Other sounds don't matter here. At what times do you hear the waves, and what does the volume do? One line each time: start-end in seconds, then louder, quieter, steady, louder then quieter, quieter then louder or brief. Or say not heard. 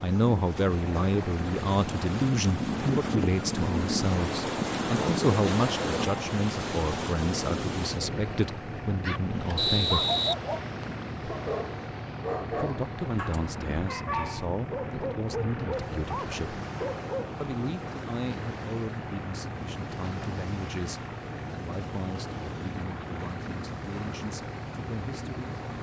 0.0-25.7 quieter.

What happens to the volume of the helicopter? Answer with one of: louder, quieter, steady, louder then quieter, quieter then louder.
steady.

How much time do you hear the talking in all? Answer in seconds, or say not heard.
22 s.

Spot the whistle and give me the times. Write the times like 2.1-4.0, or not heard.
9.6-11.1.